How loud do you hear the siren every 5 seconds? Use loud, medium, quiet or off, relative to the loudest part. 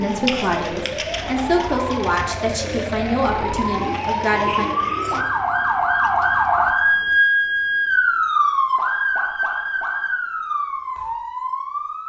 medium, loud, medium.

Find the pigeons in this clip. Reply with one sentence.
The pigeons can be heard from 0.0 to 5.2 s.